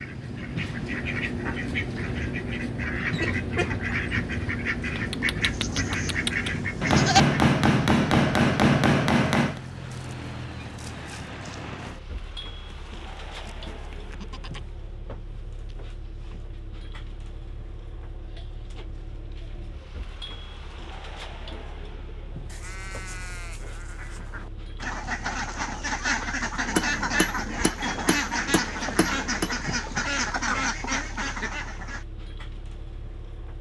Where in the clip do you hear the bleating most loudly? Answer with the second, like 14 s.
7 s.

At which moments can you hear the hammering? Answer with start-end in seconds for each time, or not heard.
6.8-9.6, 26.6-29.5.